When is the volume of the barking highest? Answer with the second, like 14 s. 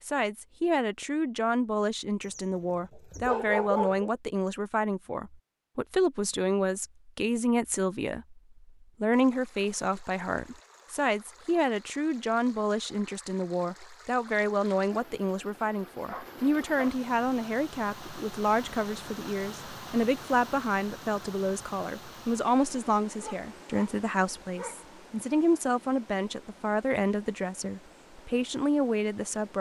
4 s.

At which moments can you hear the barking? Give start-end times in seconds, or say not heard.
2.2-4.1, 16.1-17.0, 23.1-24.9.